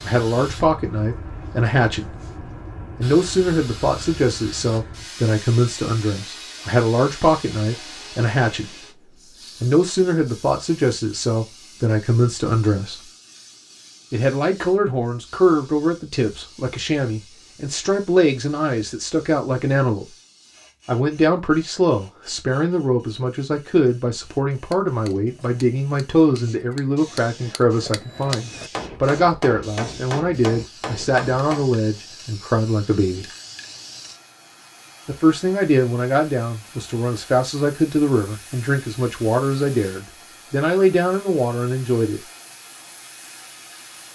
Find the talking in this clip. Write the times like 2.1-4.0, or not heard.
0.0-2.2, 3.0-8.9, 9.6-13.1, 14.1-20.1, 20.9-33.2, 35.0-42.2.